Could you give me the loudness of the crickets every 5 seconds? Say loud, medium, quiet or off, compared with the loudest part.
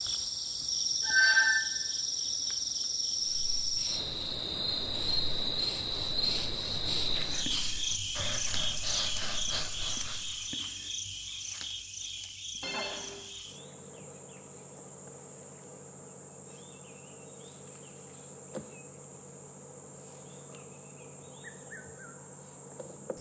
loud, loud, medium, quiet, quiet.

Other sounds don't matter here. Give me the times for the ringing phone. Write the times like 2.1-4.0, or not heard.
1.0-1.6, 12.6-13.2.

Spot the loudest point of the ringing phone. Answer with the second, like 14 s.
1 s.